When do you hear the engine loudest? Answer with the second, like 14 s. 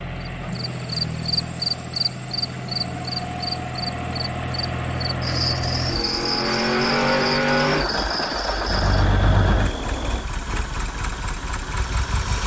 7 s.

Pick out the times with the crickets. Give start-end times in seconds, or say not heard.
0.0-10.2.